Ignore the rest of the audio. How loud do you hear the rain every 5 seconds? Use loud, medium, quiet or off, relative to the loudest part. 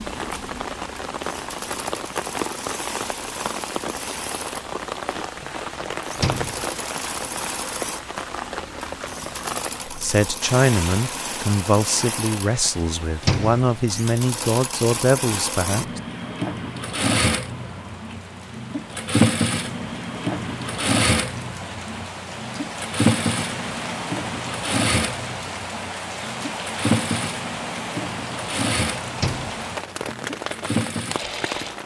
loud, loud, medium, quiet, loud, loud, loud.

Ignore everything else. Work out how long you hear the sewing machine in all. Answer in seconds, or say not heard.
32 s.